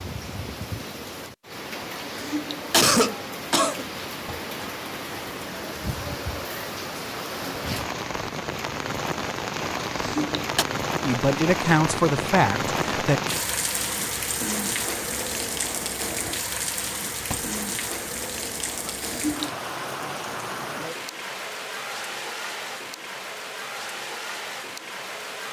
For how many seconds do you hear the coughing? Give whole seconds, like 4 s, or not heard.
3 s.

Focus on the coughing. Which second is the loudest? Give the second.
3 s.